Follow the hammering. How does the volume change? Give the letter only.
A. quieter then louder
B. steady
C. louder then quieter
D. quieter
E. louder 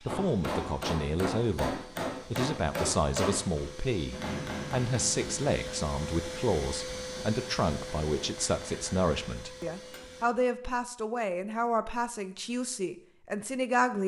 D.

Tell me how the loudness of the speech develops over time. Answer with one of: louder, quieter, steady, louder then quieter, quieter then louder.
steady.